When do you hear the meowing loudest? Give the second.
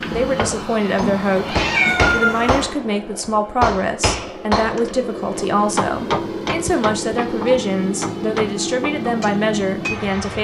2 s.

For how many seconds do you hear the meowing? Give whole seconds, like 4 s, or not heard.
3 s.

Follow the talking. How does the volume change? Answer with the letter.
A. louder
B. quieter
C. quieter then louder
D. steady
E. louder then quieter
D.